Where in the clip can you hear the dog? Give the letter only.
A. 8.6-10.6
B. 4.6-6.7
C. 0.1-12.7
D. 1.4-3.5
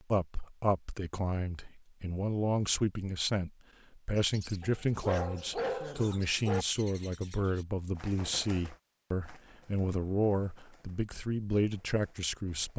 B.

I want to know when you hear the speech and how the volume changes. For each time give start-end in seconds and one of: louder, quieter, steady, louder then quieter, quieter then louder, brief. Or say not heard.
0.1-12.7 steady.